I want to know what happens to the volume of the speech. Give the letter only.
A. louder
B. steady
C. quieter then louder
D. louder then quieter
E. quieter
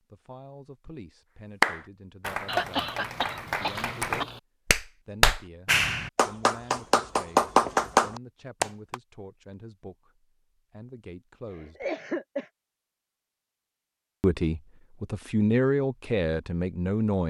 A.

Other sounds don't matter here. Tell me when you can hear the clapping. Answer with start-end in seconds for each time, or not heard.
1.6-8.9.